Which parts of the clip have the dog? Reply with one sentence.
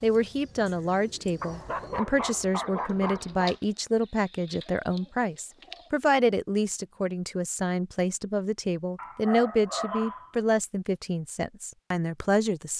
You can hear the dog from 1.4 to 3.5 s and from 8.9 to 10.3 s.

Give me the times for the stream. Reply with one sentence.
You can't hear the stream here.